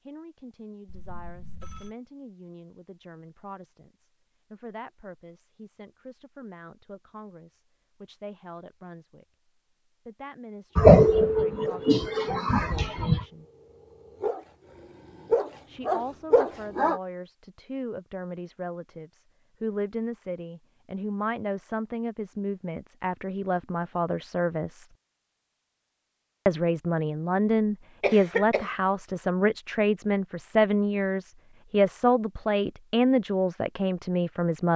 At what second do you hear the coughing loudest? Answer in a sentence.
The volume of the coughing peaks at 11 seconds.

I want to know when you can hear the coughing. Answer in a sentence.
The coughing can be heard from 10.8 to 13.2 s and from 28.0 to 28.8 s.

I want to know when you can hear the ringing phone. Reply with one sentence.
You can hear the ringing phone from 0.8 to 1.9 s.